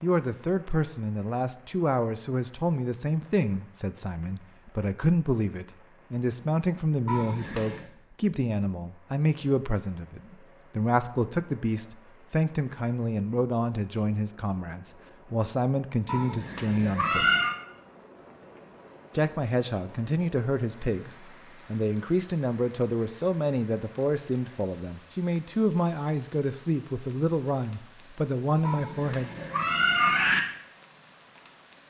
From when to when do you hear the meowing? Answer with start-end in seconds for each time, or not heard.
7.0-7.8, 16.1-17.6, 28.6-30.4.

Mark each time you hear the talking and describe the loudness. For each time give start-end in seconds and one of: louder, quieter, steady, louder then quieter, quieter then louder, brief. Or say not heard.
0.0-17.3 steady
19.1-21.1 brief
21.7-29.3 steady.